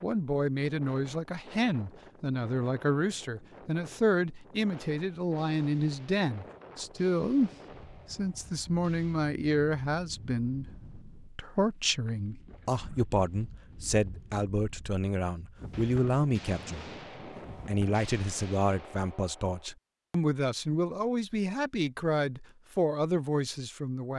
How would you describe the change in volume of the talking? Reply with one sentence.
The loudness of the talking stays about the same.